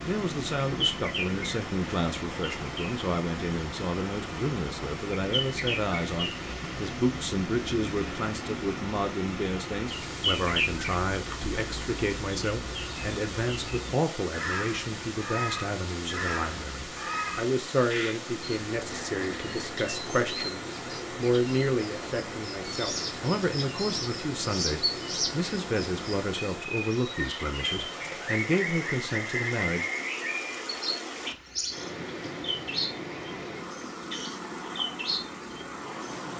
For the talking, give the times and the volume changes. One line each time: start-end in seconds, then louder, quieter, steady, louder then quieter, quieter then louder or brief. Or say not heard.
0.0-29.9 steady.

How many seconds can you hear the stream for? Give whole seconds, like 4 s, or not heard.
36 s.